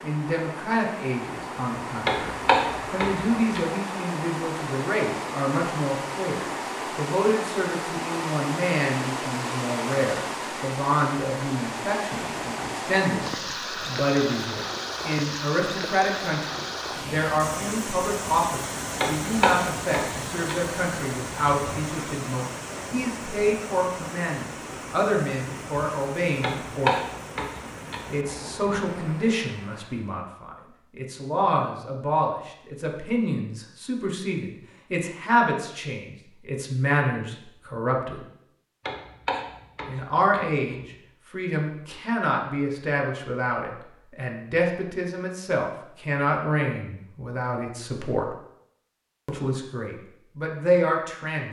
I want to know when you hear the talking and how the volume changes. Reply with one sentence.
You can hear the talking from 0.0 to 27.0 s, at a steady volume; from 28.1 to 38.2 s, at a steady volume; from 39.9 to 48.3 s, at a steady volume; and briefly from 49.2 to 51.4 s.